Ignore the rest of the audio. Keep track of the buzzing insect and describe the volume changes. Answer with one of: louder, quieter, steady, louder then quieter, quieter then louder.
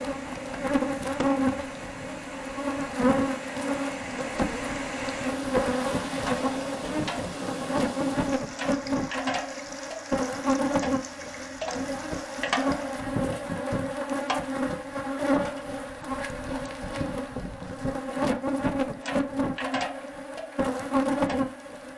steady.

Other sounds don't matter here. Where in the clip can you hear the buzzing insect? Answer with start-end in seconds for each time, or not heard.
0.0-21.9.